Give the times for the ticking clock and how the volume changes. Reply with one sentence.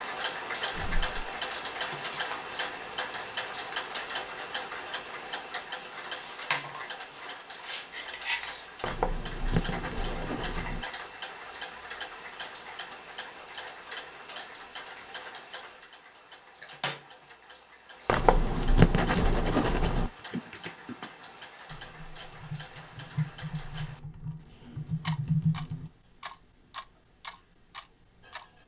The ticking clock can be heard from 0.0 to 28.6 s, getting quieter.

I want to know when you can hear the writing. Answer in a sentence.
The writing can be heard from 8.8 to 10.8 s and from 18.1 to 20.1 s.